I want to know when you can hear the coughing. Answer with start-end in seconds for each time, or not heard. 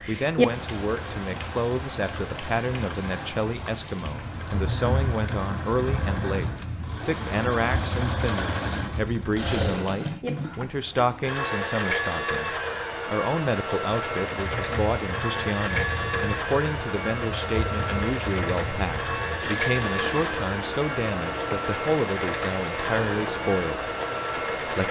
not heard.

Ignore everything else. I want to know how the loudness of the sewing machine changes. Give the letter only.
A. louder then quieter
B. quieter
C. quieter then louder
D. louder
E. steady
D.